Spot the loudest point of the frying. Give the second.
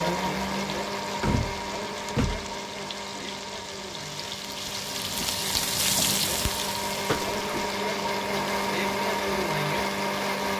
6 s.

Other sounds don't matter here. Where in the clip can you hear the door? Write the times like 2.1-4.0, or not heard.
1.2-2.5, 7.0-7.7.